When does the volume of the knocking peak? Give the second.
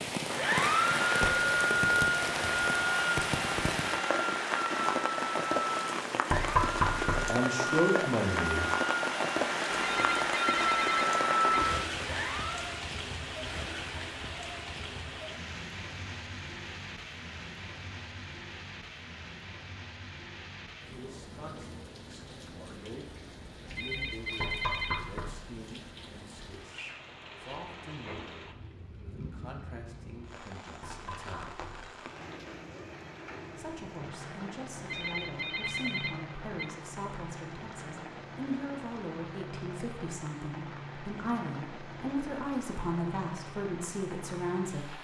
7 s.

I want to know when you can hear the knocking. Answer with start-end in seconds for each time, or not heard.
6.3-7.3, 24.4-25.4, 30.8-31.9.